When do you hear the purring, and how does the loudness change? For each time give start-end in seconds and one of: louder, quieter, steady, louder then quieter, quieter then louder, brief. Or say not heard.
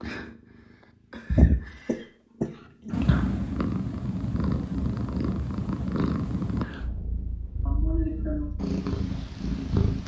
0.0-1.9 brief
2.9-10.0 quieter then louder.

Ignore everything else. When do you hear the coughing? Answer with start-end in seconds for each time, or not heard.
1.4-3.0, 7.7-8.6.